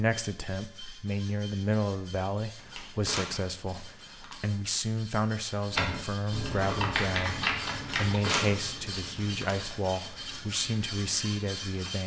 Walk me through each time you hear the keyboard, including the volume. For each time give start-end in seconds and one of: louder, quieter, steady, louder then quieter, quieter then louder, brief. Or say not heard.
5.7-11.9 quieter.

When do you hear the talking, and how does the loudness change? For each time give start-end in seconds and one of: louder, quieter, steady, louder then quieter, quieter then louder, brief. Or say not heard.
0.0-12.0 steady.